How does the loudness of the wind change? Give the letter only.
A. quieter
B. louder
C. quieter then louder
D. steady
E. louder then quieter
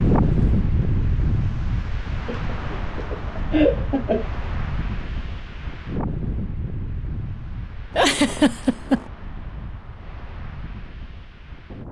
A.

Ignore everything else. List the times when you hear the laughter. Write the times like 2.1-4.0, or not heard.
2.2-4.2, 8.0-9.1.